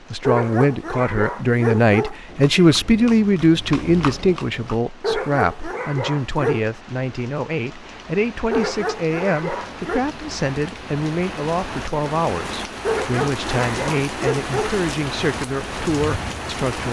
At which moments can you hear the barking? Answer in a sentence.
You can hear the barking from 0.2 to 2.1 s, from 5.0 to 6.7 s, from 8.5 to 10.0 s and from 12.8 to 14.8 s.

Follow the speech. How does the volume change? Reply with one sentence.
The loudness of the speech goes down.